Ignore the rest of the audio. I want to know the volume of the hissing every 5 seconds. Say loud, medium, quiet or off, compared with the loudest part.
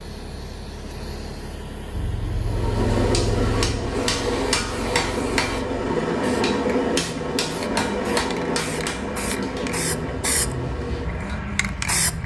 medium, medium, loud.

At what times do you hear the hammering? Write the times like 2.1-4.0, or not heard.
2.4-11.4.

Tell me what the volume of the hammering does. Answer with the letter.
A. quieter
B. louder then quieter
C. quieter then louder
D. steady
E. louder
A.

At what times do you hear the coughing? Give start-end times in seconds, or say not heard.
not heard.